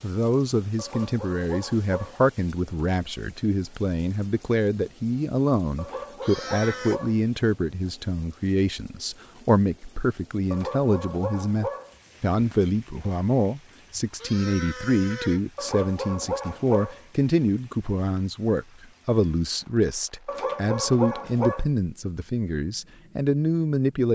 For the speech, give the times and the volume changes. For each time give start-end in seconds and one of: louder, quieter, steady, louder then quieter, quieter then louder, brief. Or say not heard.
0.0-24.0 steady.